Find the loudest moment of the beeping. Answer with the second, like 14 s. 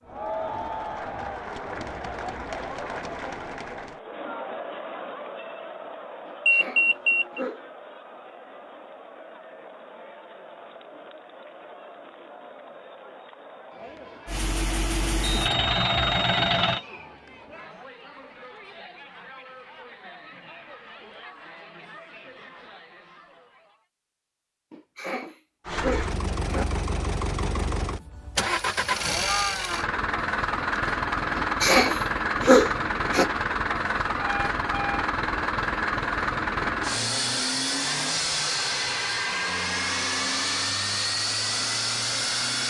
7 s.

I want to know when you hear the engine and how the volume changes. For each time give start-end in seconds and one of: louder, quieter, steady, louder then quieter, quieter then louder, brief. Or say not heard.
14.2-16.8 brief
25.6-42.6 steady.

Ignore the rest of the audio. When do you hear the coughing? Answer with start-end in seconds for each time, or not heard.
6.2-7.6, 24.7-26.6, 31.4-33.2.